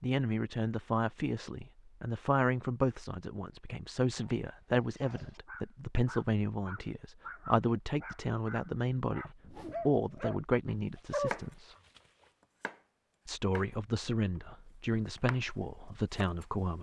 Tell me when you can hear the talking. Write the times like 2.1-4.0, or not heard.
0.0-11.8, 13.2-16.7.